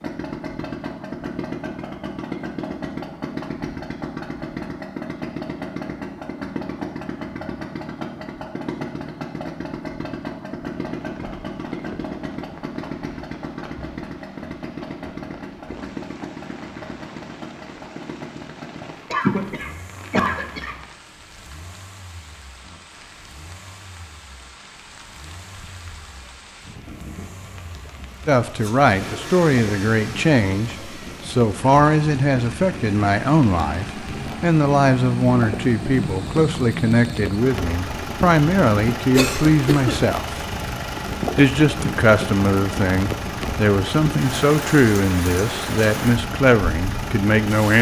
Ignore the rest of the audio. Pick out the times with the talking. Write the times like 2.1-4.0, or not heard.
28.2-40.4, 41.4-47.7.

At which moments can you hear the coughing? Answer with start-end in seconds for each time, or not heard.
18.8-20.8, 39.1-40.0.